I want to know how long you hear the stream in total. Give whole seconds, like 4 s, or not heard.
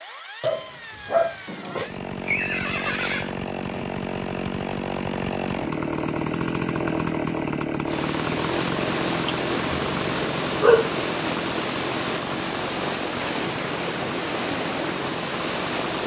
8 s.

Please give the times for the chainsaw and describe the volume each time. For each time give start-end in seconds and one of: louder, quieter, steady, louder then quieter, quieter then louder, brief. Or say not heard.
0.0-16.0 louder then quieter.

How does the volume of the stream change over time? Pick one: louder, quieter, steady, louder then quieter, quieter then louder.
steady.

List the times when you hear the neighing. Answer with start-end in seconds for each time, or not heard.
2.2-3.4.